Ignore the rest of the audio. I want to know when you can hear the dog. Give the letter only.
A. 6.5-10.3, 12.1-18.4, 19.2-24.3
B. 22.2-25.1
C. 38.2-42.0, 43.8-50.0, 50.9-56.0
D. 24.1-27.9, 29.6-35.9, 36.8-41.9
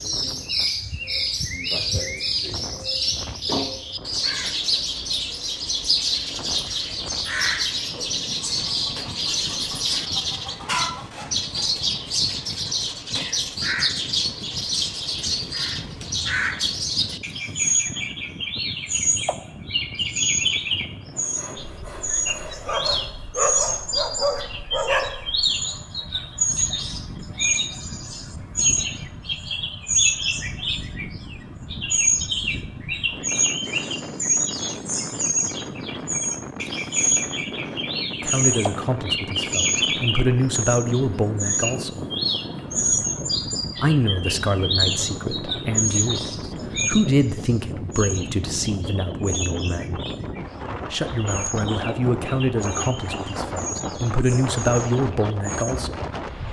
B.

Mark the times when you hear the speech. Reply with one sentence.
The speech can be heard from 38.2 to 42.0 s, from 43.8 to 50.0 s and from 50.9 to 56.0 s.